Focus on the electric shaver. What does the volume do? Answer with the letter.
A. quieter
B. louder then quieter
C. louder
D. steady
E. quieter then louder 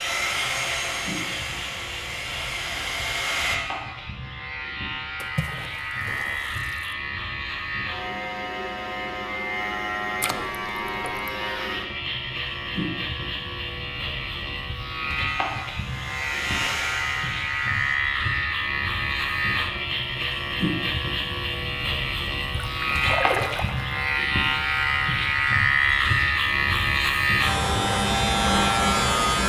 C.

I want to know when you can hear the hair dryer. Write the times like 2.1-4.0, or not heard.
0.0-3.6, 15.2-18.0.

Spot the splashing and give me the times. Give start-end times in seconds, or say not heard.
5.2-7.0, 10.2-11.3, 22.5-23.9.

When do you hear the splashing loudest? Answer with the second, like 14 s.
23 s.